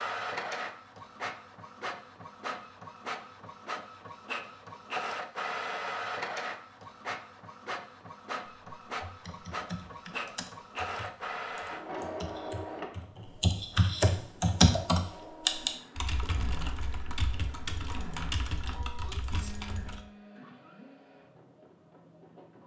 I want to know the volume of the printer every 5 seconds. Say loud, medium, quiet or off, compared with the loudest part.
loud, loud, loud, medium, quiet.